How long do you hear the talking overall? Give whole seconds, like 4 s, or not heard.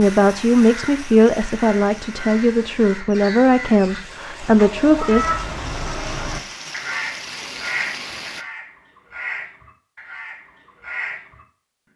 5 s.